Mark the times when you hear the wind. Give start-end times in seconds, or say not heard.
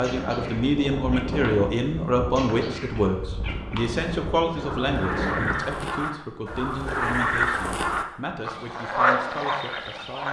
0.0-5.6.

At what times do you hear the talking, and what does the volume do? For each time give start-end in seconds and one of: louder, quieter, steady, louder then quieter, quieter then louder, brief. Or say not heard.
0.0-10.2 quieter.